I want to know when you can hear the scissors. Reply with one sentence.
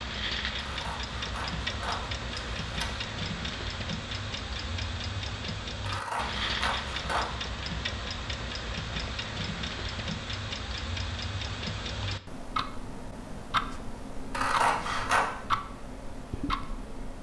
You can hear the scissors from 0.6 to 3.0 s, from 5.8 to 7.2 s and from 14.3 to 15.2 s.